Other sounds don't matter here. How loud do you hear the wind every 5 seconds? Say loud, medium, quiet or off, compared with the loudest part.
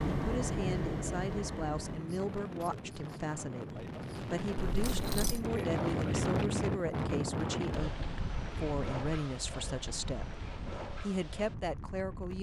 loud, loud, medium.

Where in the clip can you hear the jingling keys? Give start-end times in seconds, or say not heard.
4.7-5.5.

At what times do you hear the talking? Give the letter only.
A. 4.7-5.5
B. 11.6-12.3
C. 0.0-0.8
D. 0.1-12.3
D.